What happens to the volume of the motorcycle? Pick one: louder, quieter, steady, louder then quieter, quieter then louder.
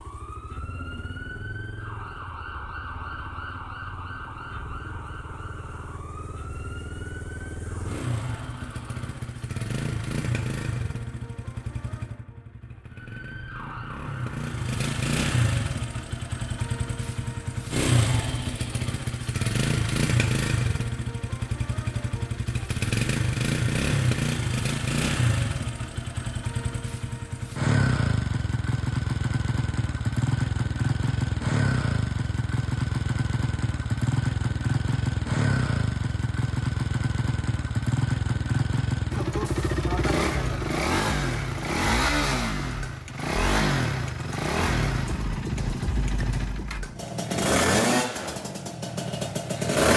louder.